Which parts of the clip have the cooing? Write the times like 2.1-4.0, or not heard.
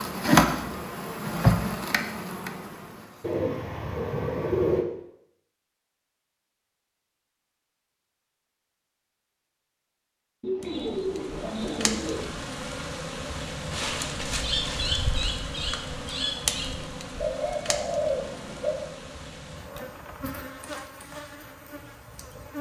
3.2-4.8, 10.4-12.3, 17.1-18.9.